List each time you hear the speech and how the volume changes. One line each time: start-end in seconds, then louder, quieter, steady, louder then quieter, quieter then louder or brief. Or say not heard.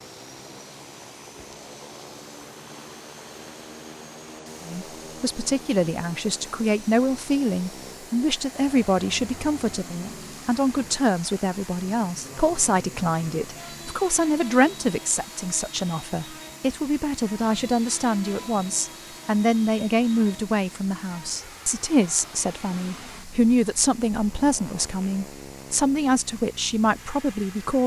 4.6-27.8 steady.